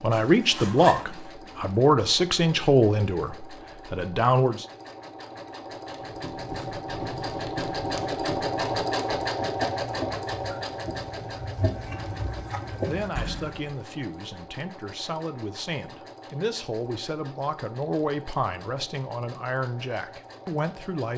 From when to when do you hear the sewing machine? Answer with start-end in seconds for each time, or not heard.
0.0-21.1.